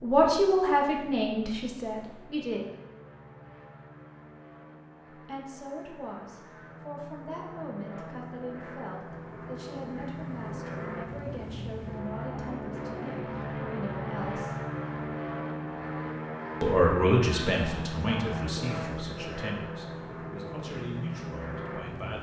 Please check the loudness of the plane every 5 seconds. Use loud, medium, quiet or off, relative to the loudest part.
quiet, medium, loud, loud, loud.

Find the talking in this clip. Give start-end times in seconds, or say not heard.
0.0-2.6, 5.2-14.6, 16.6-22.1.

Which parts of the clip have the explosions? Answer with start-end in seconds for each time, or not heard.
not heard.